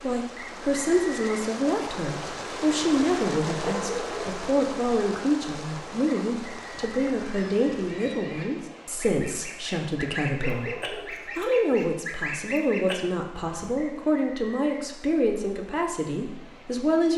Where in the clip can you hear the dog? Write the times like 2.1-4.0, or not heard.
3.6-4.5, 10.4-11.3.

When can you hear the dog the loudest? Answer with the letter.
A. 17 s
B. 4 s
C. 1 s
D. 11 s
B.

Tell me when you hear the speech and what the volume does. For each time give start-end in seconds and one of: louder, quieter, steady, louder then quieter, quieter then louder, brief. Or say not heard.
0.0-17.1 steady.